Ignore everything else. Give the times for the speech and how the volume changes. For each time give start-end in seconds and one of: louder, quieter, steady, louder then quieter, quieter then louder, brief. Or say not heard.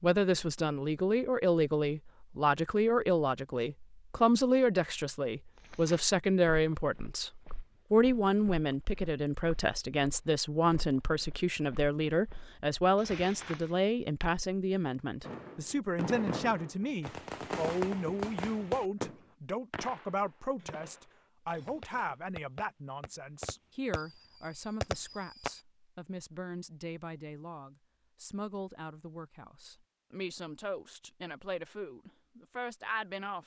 0.0-33.4 quieter.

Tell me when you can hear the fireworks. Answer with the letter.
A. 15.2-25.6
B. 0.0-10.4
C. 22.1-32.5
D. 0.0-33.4
A.